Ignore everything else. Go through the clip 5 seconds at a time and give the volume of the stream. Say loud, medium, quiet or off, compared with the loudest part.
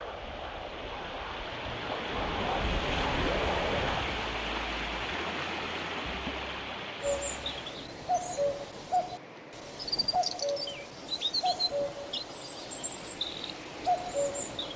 loud, loud, medium.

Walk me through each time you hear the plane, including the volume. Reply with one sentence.
The plane can be heard from 0.0 to 4.1 s, getting louder.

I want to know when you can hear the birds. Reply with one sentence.
You can hear the birds from 7.0 to 14.7 s.